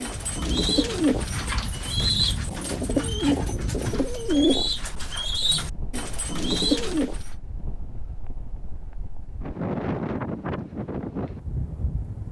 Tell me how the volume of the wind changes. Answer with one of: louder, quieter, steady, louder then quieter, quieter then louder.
quieter then louder.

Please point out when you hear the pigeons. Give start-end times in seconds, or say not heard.
0.0-7.2.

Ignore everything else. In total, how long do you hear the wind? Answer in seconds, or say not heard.
12 s.